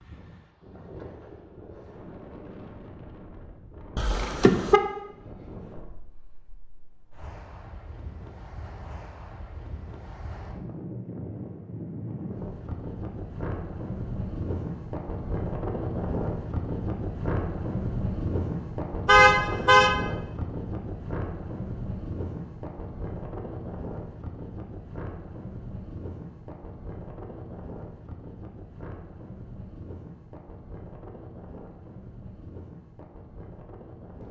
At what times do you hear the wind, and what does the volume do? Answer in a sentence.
You can hear the wind from 0.0 to 34.2 s, getting louder then quieter.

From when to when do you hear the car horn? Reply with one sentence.
The car horn can be heard from 4.0 to 4.8 s and from 19.1 to 19.9 s.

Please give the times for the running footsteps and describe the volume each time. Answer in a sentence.
The running footsteps can't be heard in this clip.